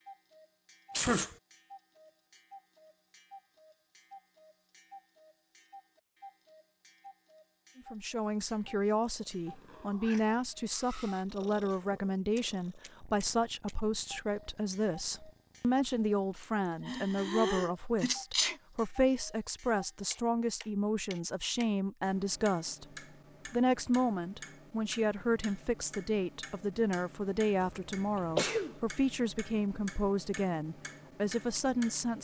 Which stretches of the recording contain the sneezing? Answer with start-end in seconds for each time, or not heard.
0.9-1.4, 16.9-18.6, 27.6-28.8.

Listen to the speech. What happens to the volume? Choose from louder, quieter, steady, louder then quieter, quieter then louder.
steady.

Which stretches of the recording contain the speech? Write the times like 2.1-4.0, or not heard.
7.8-22.9, 23.4-32.2.